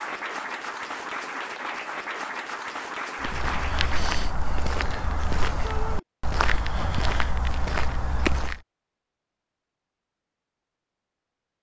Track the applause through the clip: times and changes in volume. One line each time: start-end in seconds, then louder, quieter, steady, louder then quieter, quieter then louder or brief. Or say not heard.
0.0-4.0 steady.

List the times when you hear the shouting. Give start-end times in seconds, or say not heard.
5.6-6.0.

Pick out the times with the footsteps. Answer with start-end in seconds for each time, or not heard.
3.2-8.6.